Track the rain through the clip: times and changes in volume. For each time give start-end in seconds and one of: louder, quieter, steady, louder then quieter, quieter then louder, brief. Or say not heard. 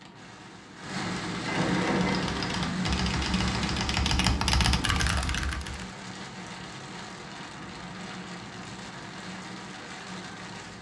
0.0-10.7 quieter.